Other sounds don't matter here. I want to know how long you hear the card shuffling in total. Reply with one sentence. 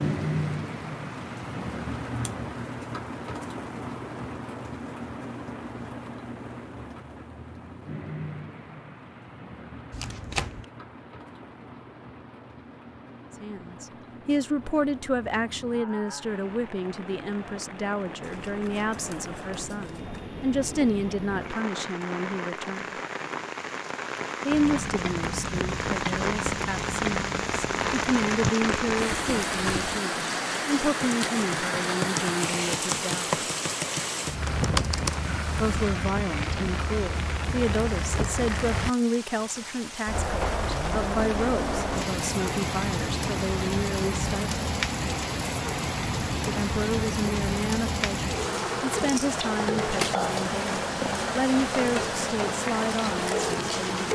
The card shuffling can be heard for 3 seconds in total.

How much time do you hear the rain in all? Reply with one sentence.
The rain can be heard for 54 seconds in total.